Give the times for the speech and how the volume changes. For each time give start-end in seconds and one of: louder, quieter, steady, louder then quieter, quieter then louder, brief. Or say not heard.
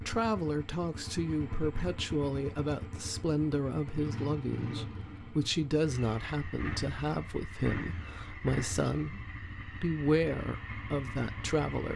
0.0-11.9 steady.